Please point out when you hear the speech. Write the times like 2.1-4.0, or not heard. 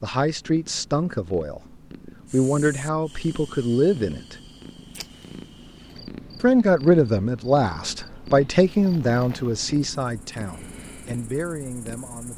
0.0-4.3, 6.4-12.3.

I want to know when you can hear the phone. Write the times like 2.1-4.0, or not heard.
not heard.